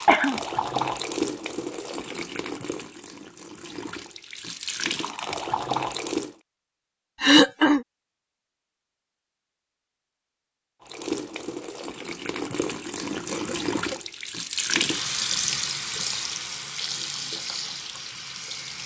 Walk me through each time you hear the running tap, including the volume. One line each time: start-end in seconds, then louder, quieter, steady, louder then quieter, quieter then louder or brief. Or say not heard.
0.0-6.3 quieter then louder
10.8-18.8 louder then quieter.